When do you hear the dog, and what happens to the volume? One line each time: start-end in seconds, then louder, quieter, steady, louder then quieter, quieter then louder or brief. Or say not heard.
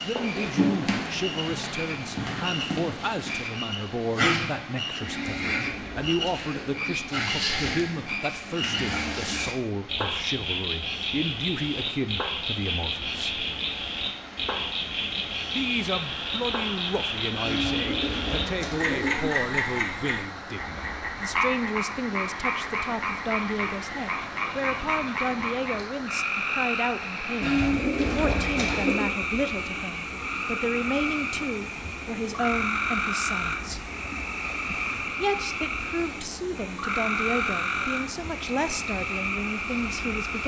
not heard.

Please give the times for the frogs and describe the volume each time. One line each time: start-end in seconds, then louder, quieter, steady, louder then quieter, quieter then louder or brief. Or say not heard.
0.0-40.4 steady.